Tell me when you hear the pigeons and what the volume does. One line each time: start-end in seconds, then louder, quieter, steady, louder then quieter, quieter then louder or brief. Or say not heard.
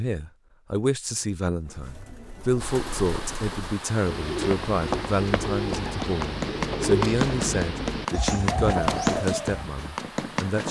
1.6-9.8 louder.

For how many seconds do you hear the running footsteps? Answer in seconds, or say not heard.
6 s.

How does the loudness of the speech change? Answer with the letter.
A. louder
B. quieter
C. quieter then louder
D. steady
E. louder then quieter
D.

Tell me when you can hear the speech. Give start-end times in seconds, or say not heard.
0.0-10.6.